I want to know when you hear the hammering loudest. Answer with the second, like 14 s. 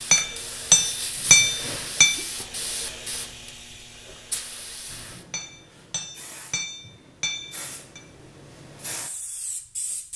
1 s.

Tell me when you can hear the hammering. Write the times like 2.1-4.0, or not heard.
0.1-2.1, 5.3-8.0.